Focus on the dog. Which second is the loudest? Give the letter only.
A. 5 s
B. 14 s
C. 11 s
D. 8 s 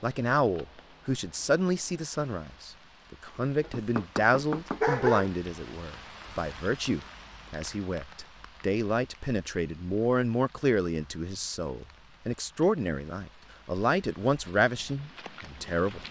A.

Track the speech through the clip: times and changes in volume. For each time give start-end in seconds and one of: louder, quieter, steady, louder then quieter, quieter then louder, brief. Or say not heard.
0.0-16.0 steady.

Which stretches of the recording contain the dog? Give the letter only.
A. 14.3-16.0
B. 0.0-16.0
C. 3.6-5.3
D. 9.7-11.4
C.